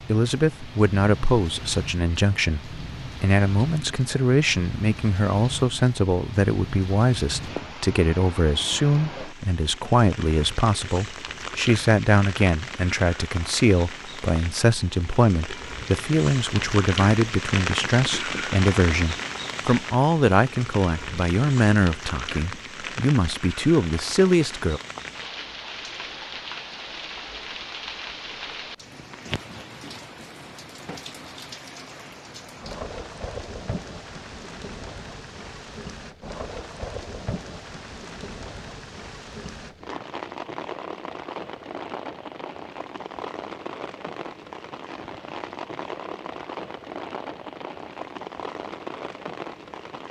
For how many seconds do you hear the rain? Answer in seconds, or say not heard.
50 s.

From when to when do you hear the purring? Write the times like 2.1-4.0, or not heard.
not heard.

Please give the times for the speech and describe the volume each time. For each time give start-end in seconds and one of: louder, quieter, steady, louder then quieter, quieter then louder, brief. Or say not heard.
0.1-24.8 steady.